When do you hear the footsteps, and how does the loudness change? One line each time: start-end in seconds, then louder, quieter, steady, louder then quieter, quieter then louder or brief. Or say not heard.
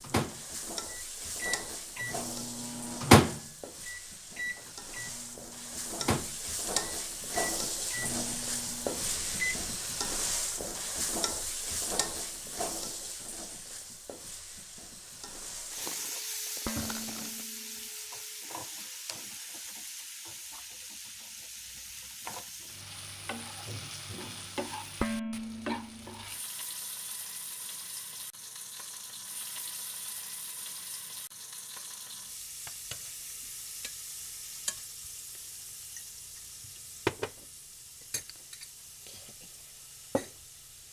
not heard.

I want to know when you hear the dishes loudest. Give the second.
25 s.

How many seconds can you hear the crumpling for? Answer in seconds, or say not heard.
2 s.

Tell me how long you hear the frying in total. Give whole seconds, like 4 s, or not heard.
41 s.